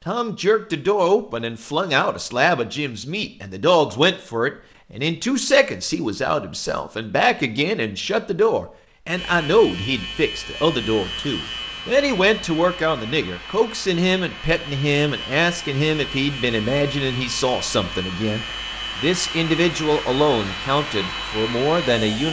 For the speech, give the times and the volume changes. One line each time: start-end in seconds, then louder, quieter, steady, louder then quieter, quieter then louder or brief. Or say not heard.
0.1-22.2 steady.